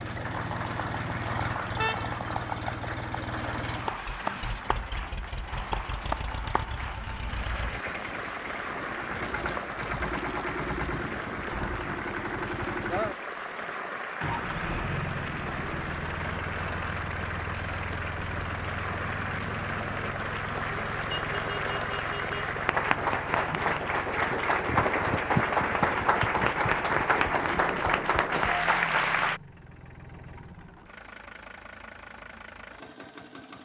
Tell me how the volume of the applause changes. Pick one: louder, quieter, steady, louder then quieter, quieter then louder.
louder.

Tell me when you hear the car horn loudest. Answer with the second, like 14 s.
2 s.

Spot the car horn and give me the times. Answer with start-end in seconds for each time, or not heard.
1.8-2.2, 21.1-22.6.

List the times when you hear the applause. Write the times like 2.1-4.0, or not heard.
0.0-29.4.